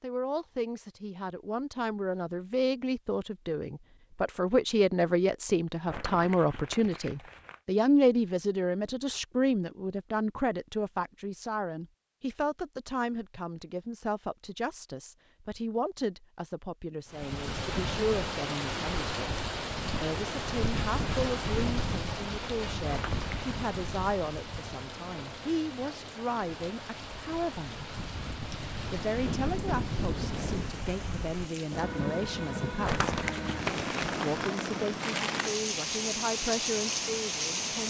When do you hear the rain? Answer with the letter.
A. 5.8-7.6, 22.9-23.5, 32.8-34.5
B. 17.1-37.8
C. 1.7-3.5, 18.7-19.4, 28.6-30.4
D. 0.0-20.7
B.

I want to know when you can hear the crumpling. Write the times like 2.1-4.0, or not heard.
5.8-7.6, 22.9-23.5, 32.8-34.5.